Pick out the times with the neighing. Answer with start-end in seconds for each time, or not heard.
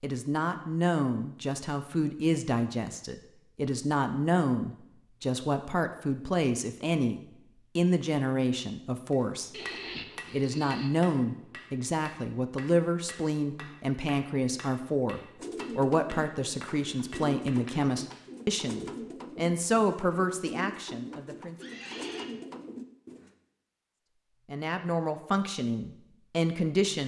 9.5-10.9, 21.6-22.3.